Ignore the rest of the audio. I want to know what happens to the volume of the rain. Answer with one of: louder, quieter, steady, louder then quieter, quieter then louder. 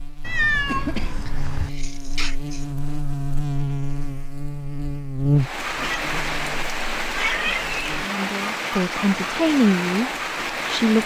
steady.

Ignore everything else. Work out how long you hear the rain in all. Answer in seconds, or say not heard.
6 s.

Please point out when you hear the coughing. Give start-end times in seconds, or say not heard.
0.7-2.6.